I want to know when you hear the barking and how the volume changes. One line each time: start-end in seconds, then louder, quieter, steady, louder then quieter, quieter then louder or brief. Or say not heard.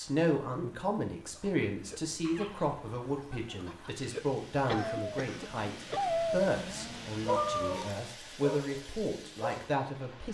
1.2-9.7 louder then quieter.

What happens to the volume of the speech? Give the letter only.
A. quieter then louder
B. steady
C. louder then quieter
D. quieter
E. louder
B.